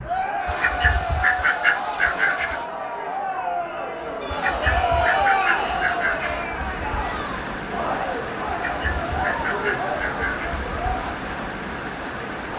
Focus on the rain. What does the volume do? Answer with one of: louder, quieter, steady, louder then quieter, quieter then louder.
louder.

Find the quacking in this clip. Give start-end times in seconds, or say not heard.
0.5-2.6, 4.2-6.3, 8.4-10.6.